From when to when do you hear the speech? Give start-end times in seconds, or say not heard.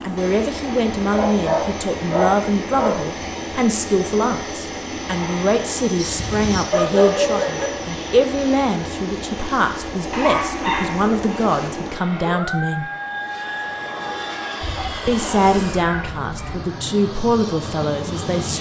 0.0-12.8, 15.1-18.5.